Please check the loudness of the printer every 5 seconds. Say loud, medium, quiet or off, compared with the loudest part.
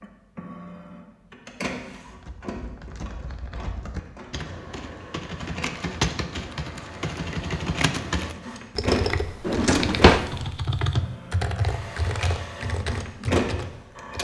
medium, loud, loud.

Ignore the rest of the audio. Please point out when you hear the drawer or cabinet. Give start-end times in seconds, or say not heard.
9.4-10.3.